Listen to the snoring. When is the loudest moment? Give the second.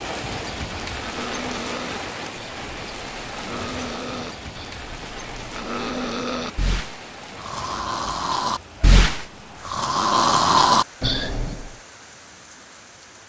11 s.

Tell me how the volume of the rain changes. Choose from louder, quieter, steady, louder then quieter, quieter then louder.
quieter.